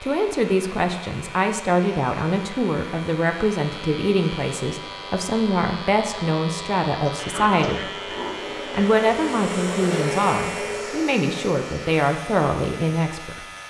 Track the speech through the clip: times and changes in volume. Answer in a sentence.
The speech can be heard from 0.0 to 8.0 s, at a steady volume; and from 8.7 to 13.4 s, at a steady volume.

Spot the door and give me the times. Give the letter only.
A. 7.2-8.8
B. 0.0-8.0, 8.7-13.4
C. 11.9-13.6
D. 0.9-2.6
A.